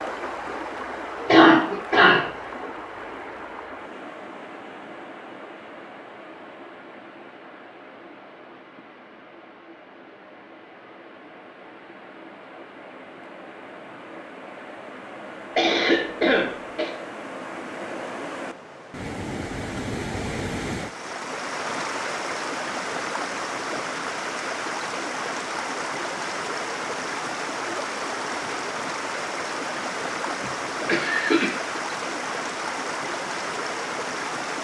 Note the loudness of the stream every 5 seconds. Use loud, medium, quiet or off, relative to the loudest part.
medium, quiet, quiet, medium, loud, loud, loud.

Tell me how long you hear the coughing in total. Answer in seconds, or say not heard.
4 s.